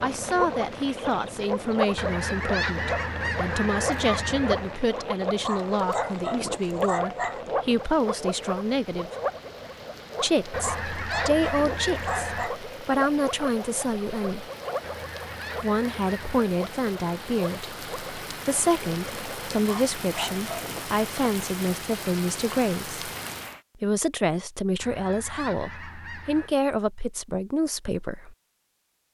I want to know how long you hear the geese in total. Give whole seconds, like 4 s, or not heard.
8 s.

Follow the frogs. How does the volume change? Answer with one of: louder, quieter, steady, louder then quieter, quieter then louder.
quieter.